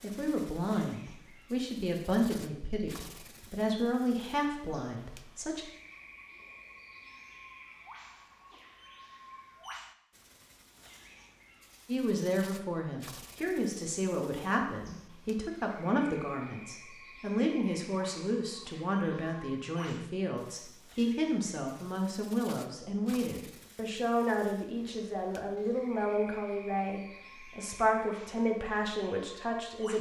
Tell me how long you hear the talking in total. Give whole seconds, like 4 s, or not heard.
24 s.